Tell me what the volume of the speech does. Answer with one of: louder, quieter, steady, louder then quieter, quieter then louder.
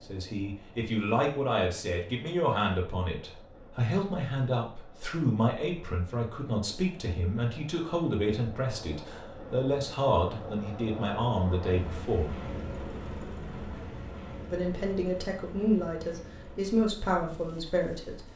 steady.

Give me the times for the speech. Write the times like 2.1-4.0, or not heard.
0.0-12.3, 14.5-18.2.